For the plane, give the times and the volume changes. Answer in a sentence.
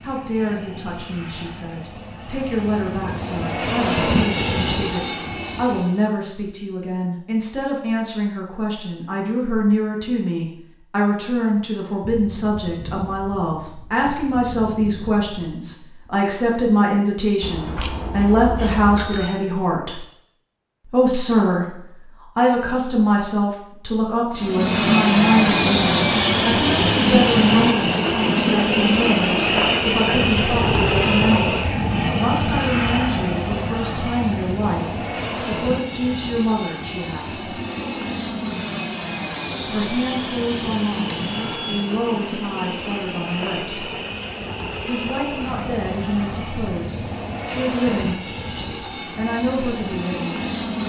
The plane can be heard from 0.0 to 6.2 s, getting louder then quieter; and from 24.3 to 50.8 s, getting quieter.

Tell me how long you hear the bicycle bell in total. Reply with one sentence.
The bicycle bell can be heard for 3 seconds in total.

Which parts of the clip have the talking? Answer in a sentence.
The talking can be heard from 0.0 to 20.0 s, from 20.9 to 37.5 s, from 39.6 to 44.0 s, from 44.9 to 48.2 s and from 49.1 to 50.4 s.